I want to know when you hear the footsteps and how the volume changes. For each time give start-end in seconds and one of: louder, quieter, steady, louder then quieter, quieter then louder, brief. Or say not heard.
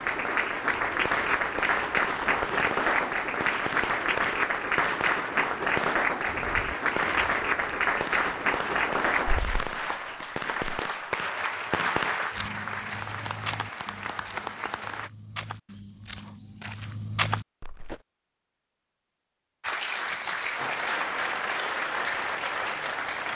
12.3-18.0 quieter then louder.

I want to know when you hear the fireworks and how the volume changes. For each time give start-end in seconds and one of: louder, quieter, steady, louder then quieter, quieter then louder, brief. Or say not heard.
0.9-12.3 steady.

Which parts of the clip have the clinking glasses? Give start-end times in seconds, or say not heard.
not heard.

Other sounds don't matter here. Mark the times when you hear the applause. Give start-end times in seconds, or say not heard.
0.0-15.1, 19.6-23.3.